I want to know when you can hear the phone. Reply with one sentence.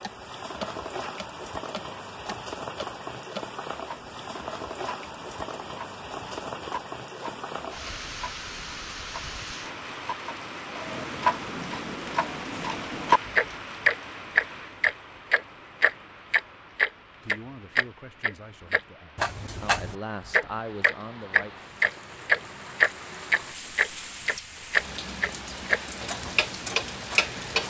You can't hear the phone here.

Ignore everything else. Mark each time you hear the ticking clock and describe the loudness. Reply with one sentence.
You can hear the ticking clock from 0.0 to 27.6 s, getting louder.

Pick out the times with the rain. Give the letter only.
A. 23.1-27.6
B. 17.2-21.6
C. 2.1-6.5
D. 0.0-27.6
D.